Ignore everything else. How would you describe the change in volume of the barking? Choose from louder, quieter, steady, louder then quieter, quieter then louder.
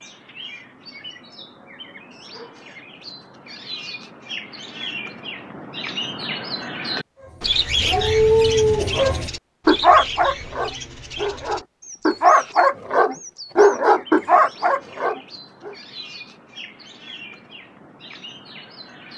steady.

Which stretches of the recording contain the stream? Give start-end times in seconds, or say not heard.
not heard.